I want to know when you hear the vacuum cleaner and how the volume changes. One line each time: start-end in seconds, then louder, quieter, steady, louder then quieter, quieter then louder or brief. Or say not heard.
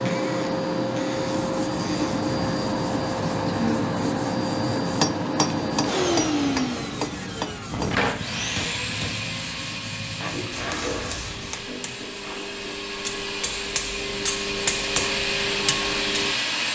0.0-16.7 quieter then louder.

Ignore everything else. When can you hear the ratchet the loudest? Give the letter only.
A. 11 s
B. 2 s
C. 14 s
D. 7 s
A.